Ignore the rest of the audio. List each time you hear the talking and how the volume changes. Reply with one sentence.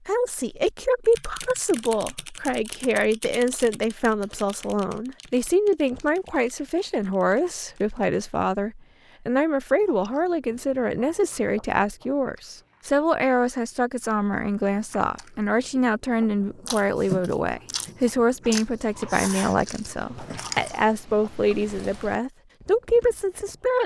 You can hear the talking from 0.1 to 23.8 s, at a steady volume.